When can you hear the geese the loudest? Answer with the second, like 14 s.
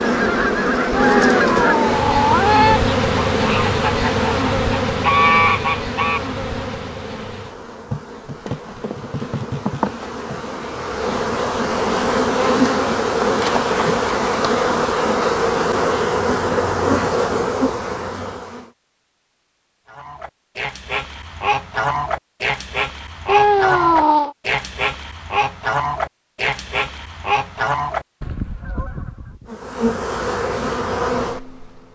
5 s.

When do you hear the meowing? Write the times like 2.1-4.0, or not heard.
0.9-2.8, 23.2-24.4.